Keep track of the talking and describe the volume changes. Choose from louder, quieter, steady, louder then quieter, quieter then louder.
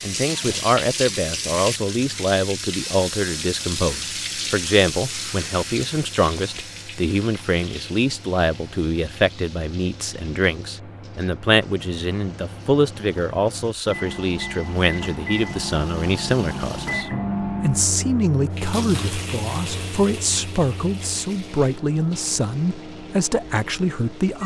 steady.